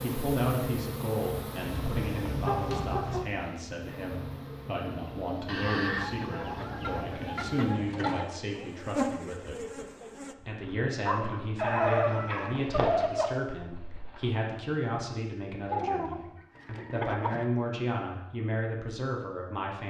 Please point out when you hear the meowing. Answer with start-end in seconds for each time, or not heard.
not heard.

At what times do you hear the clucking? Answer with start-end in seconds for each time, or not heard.
1.6-3.2, 5.5-8.2, 11.6-13.3, 15.7-17.4.